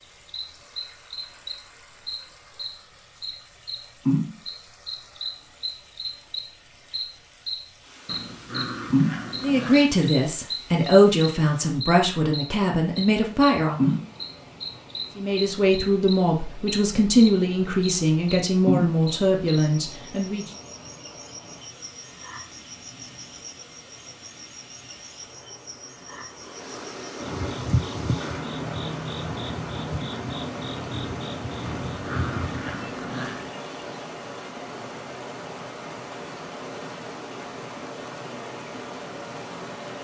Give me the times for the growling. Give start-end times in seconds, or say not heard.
8.1-9.9, 31.9-33.5.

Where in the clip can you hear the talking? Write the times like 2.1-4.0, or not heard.
9.4-13.9, 15.2-20.5.